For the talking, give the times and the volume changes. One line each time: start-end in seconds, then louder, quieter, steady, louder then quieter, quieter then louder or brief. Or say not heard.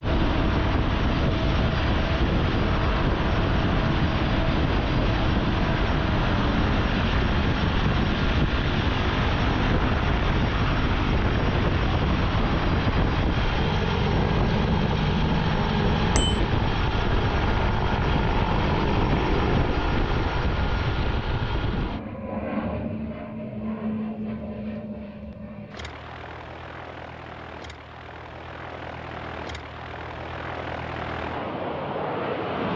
not heard.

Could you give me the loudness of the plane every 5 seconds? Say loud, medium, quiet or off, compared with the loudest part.
loud, loud, loud, loud, medium, quiet, medium.